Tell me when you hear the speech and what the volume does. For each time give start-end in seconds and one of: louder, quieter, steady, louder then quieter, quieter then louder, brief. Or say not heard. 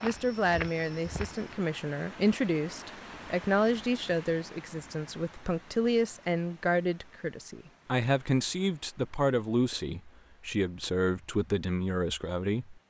0.0-12.8 steady.